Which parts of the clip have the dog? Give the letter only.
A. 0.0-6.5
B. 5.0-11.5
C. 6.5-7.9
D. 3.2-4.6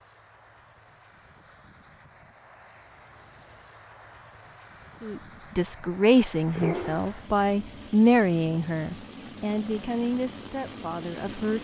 C.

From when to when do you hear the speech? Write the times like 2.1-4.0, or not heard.
5.0-11.5.